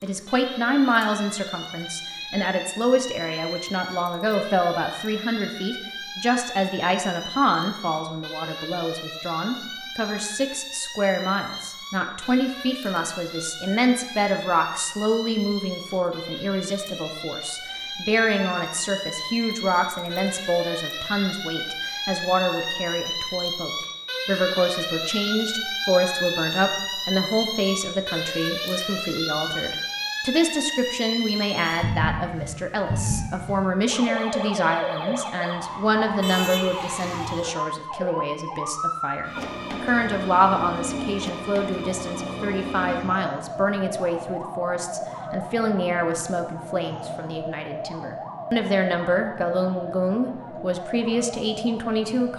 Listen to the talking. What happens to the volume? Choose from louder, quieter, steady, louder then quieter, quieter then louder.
steady.